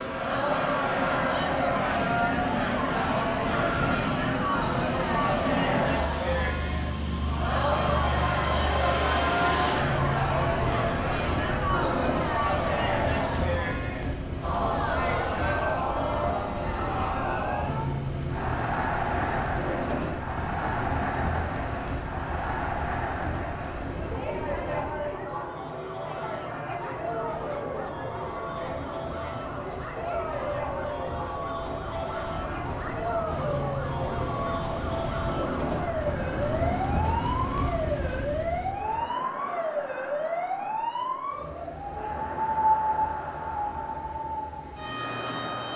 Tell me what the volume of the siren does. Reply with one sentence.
The volume of the siren goes up.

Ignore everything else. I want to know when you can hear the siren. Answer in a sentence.
The siren can be heard from 25.3 to 45.7 s.